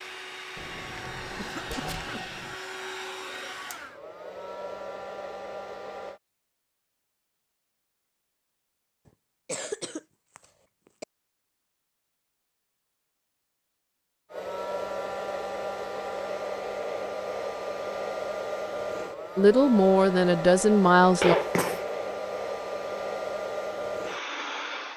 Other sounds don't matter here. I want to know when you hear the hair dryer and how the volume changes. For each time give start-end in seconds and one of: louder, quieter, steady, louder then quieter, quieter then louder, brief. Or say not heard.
0.0-6.2 steady
14.3-24.9 steady.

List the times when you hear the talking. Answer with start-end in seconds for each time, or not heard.
19.4-21.4.